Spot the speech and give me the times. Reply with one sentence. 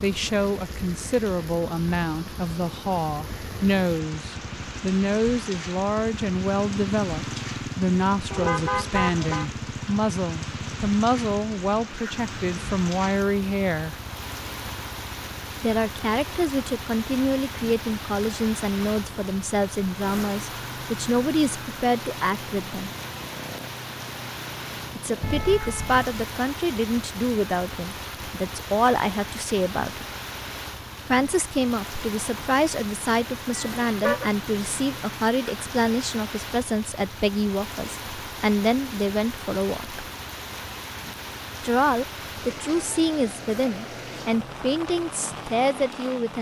You can hear the speech from 0.0 to 13.9 s, from 15.6 to 22.9 s, from 24.9 to 30.1 s, from 31.1 to 40.0 s and from 41.6 to 46.3 s.